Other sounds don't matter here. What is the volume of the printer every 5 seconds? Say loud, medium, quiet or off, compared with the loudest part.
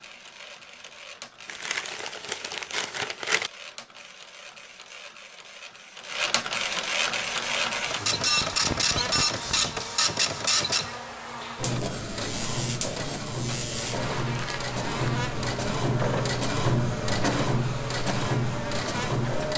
quiet, loud, loud, loud.